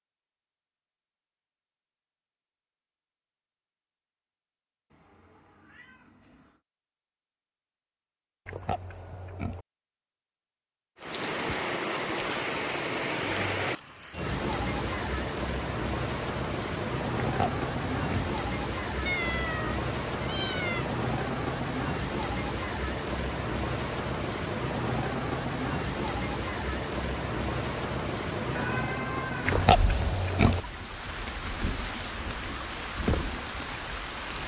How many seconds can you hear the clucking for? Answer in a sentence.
The clucking can't be heard in this clip.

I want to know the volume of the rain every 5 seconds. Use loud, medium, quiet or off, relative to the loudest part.
off, off, loud, loud, loud, loud, loud.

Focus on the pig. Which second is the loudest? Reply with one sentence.
The volume of the pig peaks at 30 seconds.